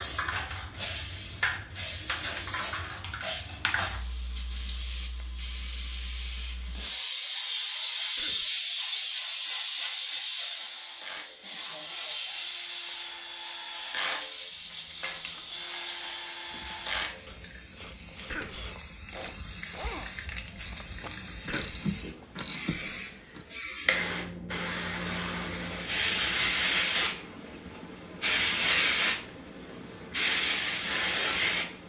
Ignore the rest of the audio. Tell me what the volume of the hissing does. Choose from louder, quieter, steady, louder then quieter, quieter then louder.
quieter then louder.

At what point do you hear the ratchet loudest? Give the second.
22 s.